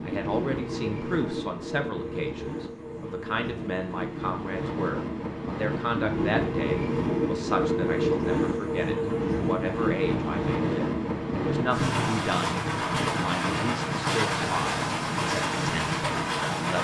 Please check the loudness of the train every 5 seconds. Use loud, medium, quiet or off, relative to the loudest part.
medium, loud, loud, loud.